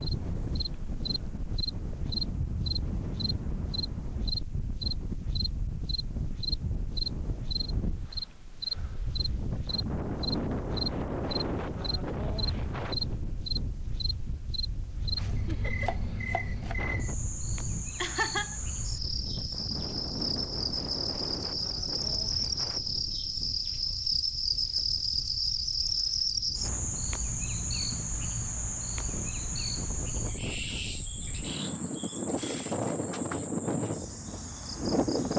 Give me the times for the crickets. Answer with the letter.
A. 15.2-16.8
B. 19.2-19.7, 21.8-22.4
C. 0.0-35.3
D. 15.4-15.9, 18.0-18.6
C.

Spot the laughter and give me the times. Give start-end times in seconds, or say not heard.
15.4-15.9, 18.0-18.6.